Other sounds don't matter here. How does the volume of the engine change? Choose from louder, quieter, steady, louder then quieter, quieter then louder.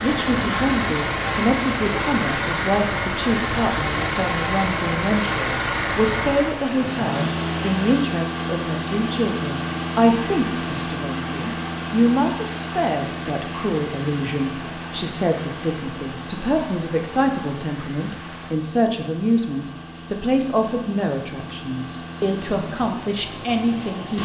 quieter.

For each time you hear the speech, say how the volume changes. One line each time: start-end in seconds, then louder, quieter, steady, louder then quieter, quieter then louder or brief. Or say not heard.
0.0-24.1 steady.